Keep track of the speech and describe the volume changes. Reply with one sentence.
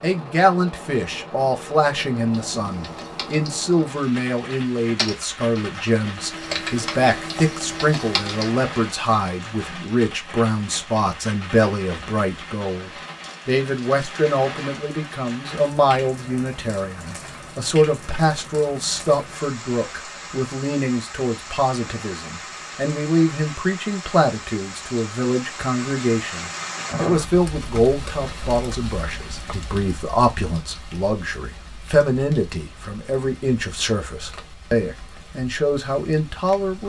The loudness of the speech stays about the same.